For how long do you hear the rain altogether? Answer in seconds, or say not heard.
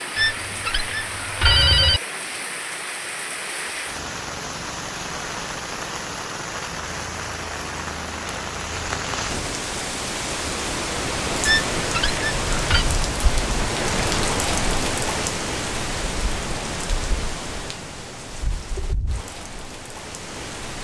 21 s.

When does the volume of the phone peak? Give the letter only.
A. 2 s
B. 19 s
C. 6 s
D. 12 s
A.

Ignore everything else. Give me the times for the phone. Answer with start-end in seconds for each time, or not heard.
0.1-2.0, 11.4-12.8.